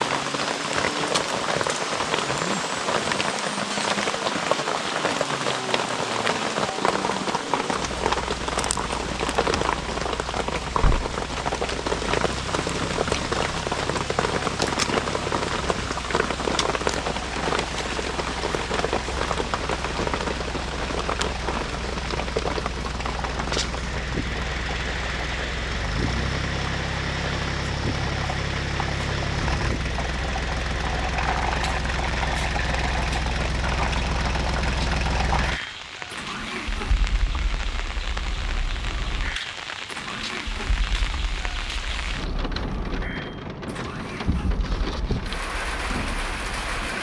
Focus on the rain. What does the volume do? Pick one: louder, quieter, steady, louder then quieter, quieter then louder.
quieter.